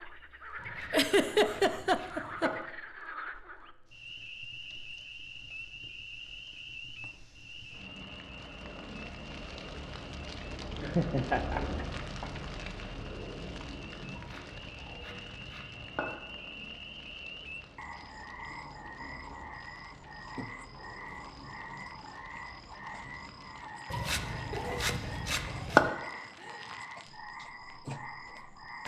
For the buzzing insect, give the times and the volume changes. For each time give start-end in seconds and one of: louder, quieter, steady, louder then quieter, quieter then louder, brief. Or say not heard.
not heard.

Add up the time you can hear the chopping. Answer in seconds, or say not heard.
6 s.